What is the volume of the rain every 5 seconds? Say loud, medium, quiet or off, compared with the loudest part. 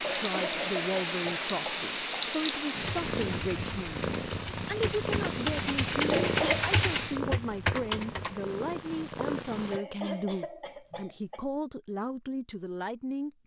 loud, loud, off.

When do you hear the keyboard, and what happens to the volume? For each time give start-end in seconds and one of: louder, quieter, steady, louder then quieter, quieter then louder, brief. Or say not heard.
2.8-8.3 louder.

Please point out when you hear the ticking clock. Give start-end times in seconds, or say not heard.
not heard.